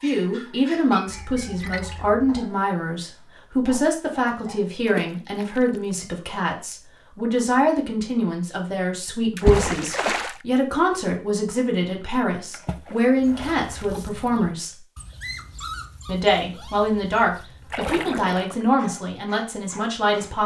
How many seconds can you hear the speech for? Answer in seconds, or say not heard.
19 s.